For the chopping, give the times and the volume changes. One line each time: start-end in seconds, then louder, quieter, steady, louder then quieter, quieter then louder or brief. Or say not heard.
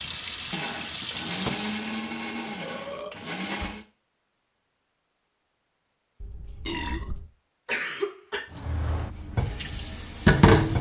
not heard.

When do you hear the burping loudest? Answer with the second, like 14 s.
7 s.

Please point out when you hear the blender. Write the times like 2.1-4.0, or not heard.
0.0-3.9.